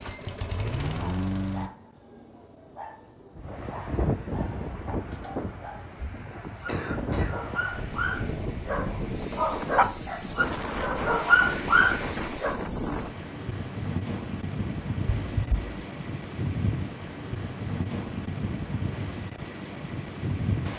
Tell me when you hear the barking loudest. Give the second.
11 s.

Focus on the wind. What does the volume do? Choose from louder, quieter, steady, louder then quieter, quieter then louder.
steady.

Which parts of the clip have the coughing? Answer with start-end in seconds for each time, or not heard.
6.7-7.3, 15.2-15.8.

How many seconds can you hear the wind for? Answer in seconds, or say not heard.
17 s.